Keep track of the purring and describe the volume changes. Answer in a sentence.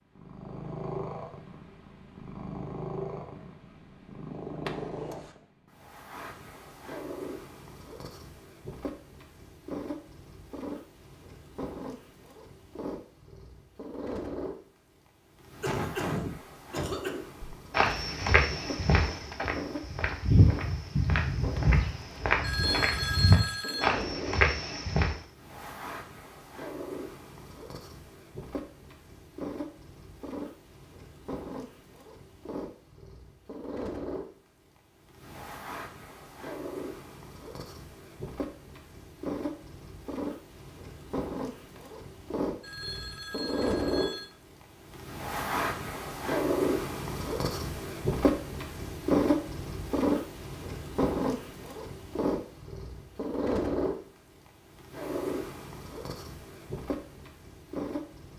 The volume of the purring goes up.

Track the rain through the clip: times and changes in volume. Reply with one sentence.
The rain can't be heard in this clip.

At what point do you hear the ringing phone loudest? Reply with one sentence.
The volume of the ringing phone peaks at 23 seconds.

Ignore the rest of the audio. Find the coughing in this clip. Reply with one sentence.
You can hear the coughing from 15.6 to 17.1 s.